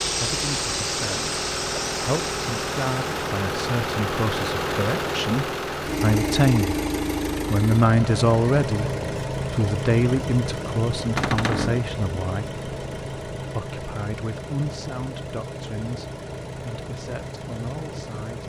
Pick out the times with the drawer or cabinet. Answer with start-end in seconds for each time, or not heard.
11.2-11.8.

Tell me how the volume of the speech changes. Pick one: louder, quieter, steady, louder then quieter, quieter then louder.
louder then quieter.